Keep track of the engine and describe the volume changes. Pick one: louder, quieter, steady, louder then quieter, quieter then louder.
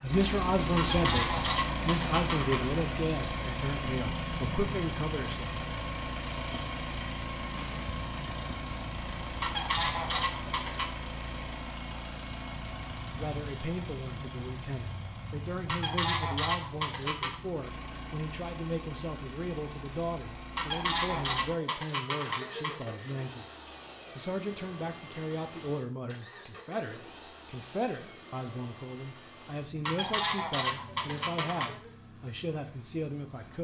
quieter.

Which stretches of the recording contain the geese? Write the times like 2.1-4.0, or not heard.
0.8-2.6, 9.4-10.9, 15.7-17.4, 20.6-22.9, 29.9-31.9.